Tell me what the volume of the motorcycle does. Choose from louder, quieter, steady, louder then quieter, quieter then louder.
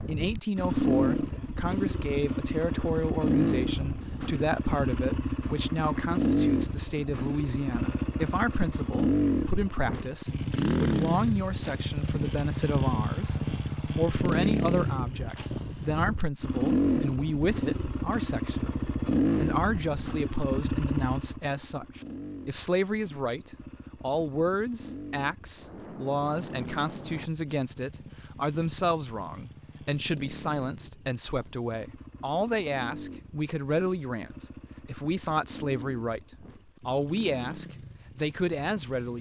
quieter.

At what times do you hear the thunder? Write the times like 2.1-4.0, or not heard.
25.6-27.3.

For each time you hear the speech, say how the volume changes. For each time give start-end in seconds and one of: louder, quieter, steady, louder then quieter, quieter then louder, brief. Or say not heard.
0.1-39.1 steady.